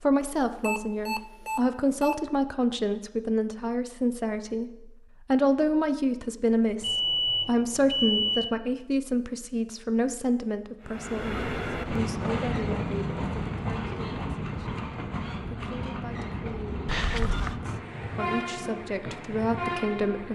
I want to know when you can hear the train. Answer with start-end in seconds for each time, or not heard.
10.8-20.3.